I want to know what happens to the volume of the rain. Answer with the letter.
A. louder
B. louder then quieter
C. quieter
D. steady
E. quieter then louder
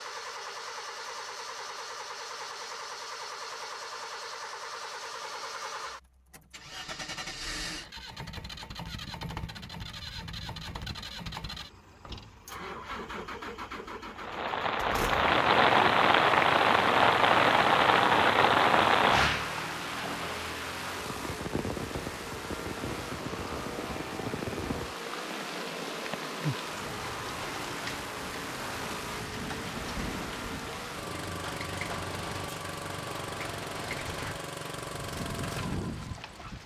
C.